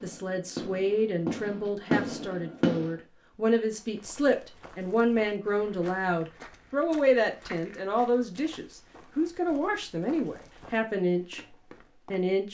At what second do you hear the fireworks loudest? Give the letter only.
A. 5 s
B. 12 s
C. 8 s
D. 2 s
D.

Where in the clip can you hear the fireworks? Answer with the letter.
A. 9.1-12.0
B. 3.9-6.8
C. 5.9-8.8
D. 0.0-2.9
D.